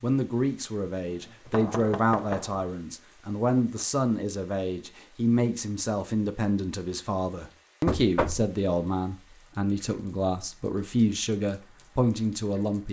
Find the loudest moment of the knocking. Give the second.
8 s.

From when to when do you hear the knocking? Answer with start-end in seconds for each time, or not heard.
1.4-2.6, 7.8-8.5.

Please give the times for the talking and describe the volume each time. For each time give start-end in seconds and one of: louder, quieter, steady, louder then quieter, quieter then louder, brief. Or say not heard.
0.0-12.8 steady.